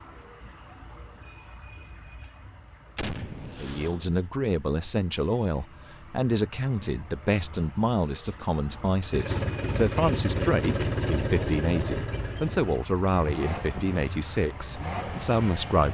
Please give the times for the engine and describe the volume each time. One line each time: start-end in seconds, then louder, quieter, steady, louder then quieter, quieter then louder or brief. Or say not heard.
9.1-15.8 quieter.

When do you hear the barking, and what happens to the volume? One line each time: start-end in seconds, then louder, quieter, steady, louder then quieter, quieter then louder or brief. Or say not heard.
not heard.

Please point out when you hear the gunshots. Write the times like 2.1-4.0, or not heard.
3.0-4.2.